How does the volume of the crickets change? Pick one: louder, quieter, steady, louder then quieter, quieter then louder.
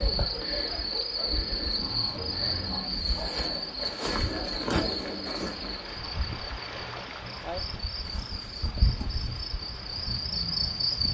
quieter then louder.